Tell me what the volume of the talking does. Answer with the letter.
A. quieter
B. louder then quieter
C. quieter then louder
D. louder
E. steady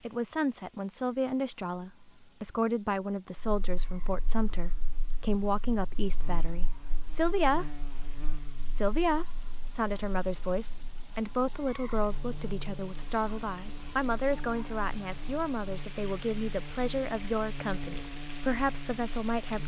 E.